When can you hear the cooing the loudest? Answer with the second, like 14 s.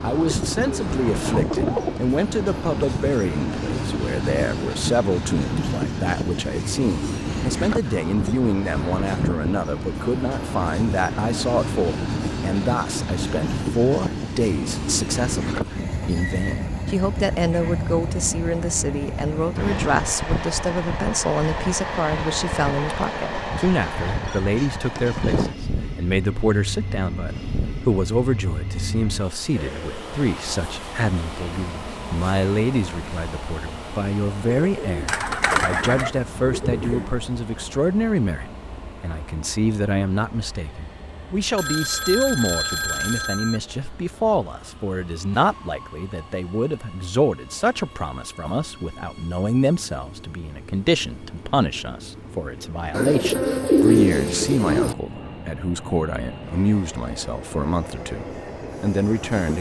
54 s.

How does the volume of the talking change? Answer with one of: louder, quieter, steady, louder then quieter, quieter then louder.
steady.